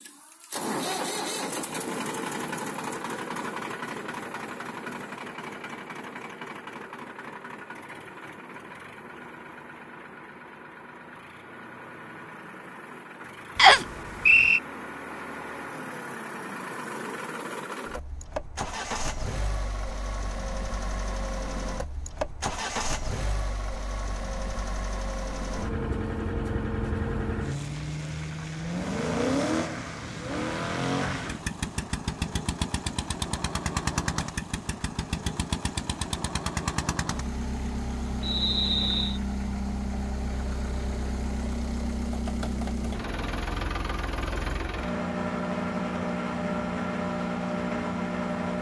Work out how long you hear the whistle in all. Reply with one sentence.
The whistle can be heard for 2 seconds in total.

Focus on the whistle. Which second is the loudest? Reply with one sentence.
The volume of the whistle peaks at 14 seconds.